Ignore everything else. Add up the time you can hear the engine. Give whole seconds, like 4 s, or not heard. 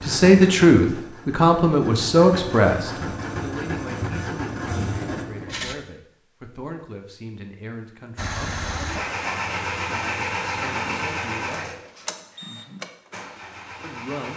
12 s.